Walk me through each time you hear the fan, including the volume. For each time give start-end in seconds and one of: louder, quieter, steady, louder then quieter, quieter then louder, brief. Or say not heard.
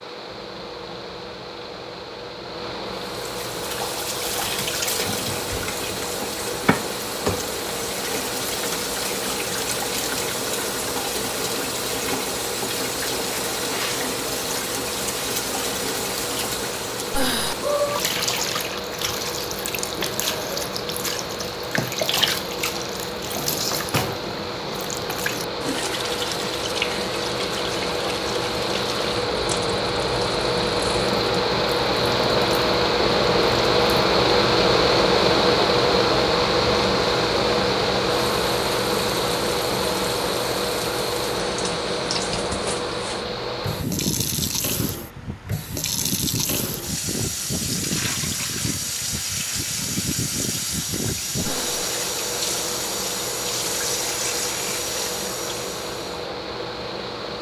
0.0-57.3 louder then quieter.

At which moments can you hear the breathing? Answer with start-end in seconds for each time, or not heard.
17.1-17.6, 51.4-51.9.